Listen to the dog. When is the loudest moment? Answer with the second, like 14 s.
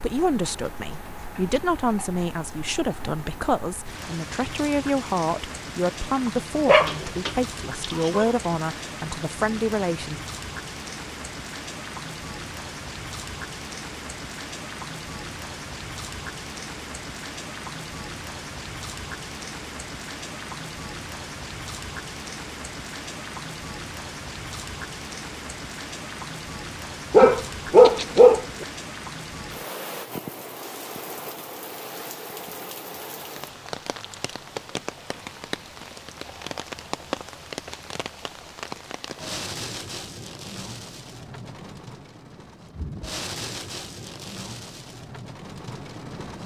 28 s.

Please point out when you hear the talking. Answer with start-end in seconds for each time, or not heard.
0.0-10.2.